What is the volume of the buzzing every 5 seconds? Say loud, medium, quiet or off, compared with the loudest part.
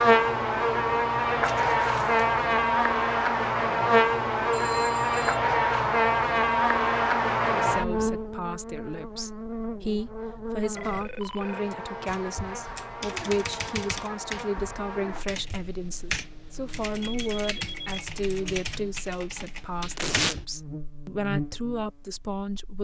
loud, loud, quiet, quiet, quiet.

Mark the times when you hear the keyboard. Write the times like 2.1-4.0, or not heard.
12.1-20.4.